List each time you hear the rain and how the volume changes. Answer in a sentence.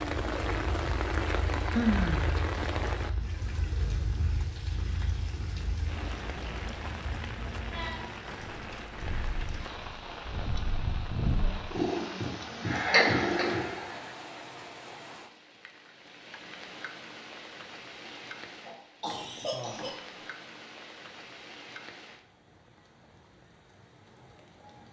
The rain can be heard from 0.0 to 24.8 s, getting quieter.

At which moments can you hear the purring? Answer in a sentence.
The purring can be heard from 0.0 to 13.8 s.